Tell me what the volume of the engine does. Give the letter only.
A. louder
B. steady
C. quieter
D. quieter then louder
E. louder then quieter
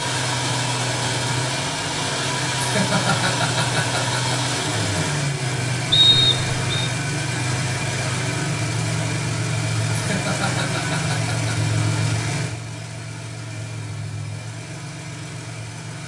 C.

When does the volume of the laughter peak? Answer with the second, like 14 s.
3 s.